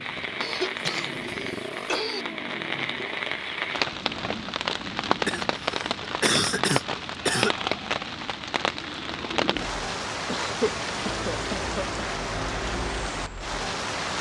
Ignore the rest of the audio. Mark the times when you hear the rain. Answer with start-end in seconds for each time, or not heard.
0.0-14.1.